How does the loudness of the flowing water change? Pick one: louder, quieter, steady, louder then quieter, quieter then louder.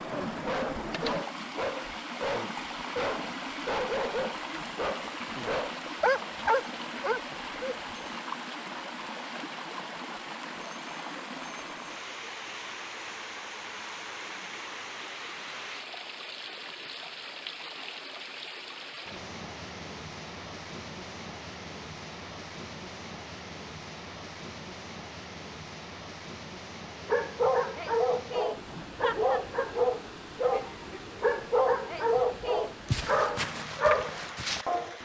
quieter.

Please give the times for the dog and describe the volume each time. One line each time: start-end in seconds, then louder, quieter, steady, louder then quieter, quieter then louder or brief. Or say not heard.
0.1-7.8 louder
27.1-34.9 steady.